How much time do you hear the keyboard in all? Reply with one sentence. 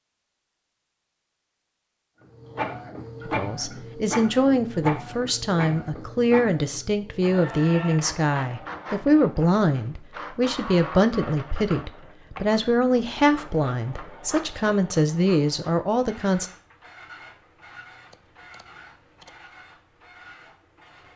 You can't hear the keyboard here.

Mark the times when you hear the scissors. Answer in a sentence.
You can hear the scissors from 18.1 to 19.4 s.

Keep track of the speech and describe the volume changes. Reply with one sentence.
The volume of the speech stays about the same.